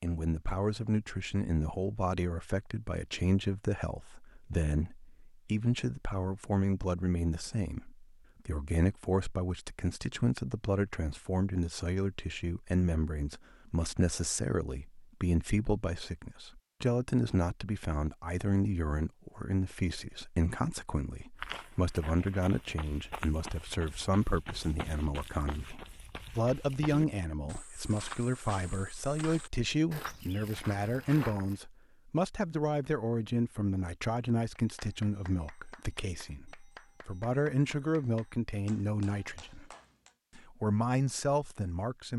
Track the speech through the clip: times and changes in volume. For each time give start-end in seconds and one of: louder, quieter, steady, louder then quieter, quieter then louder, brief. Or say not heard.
0.0-39.6 steady
40.4-42.1 brief.